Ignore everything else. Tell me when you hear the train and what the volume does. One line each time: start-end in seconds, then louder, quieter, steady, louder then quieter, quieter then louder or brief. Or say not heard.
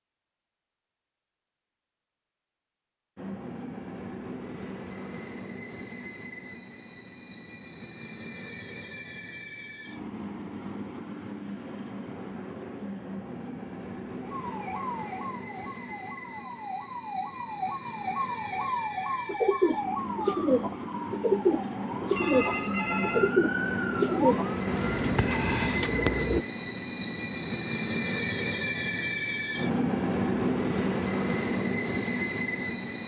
3.1-33.0 louder.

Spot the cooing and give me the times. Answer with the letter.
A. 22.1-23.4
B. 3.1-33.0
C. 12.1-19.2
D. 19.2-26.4
D.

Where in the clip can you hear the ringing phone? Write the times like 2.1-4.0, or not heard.
22.1-23.4.